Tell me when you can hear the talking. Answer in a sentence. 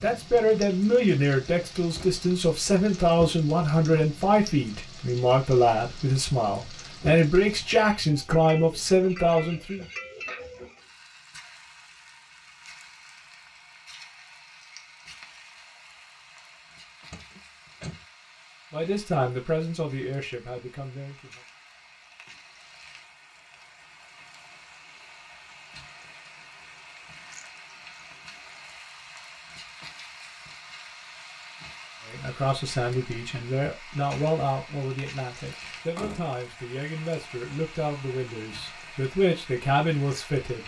The talking can be heard from 0.0 to 9.8 s, from 18.7 to 21.4 s and from 32.0 to 40.6 s.